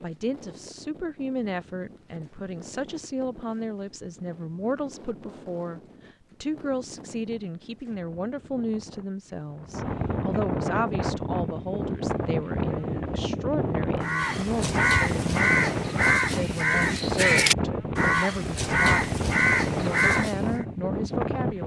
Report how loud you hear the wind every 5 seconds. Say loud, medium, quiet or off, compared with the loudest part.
quiet, quiet, loud, loud, loud.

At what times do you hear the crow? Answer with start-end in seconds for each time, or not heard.
14.0-20.6.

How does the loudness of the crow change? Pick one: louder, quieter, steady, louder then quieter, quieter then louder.
steady.